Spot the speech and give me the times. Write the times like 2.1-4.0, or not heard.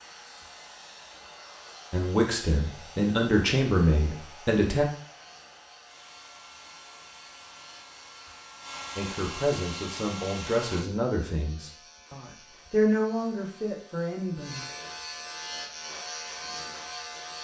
1.9-4.8, 8.9-14.7.